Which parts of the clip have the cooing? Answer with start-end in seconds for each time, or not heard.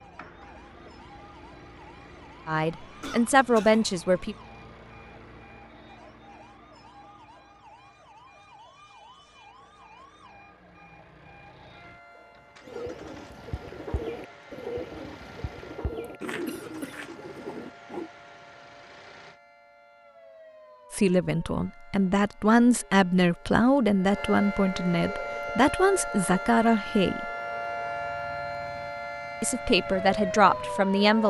12.6-18.1.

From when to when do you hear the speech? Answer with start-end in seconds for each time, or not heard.
2.5-4.3, 20.9-27.3, 29.4-31.2.